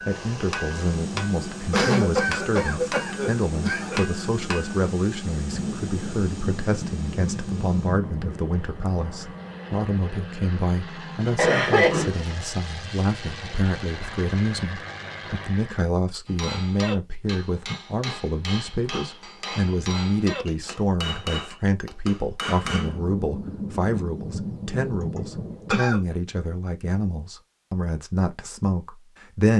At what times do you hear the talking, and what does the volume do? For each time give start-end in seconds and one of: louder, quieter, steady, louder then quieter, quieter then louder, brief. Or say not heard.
0.1-29.5 steady.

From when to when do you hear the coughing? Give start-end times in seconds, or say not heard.
1.7-4.0, 11.3-12.2, 25.1-26.0.